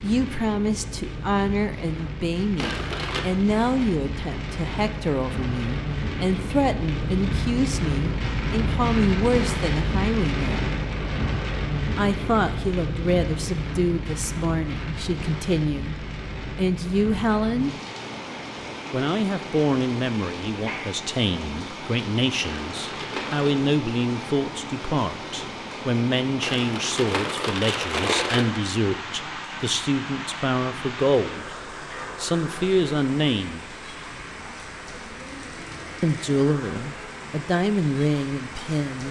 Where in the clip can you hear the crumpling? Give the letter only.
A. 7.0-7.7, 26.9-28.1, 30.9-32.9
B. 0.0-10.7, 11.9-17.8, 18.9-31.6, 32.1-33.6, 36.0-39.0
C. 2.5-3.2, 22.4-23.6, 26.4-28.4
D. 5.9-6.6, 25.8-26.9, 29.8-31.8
C.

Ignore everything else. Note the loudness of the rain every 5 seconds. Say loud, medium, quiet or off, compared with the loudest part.
medium, loud, loud, medium, medium, medium, medium, medium.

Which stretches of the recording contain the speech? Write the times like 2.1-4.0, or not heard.
0.0-10.7, 11.9-17.8, 18.9-31.6, 32.1-33.6, 36.0-39.0.